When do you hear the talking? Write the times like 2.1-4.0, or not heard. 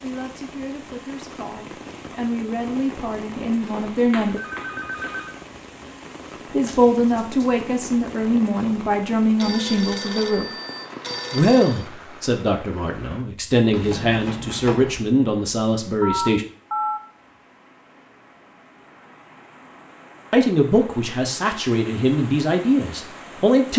0.0-4.4, 6.5-10.5, 11.3-16.4, 20.3-23.7.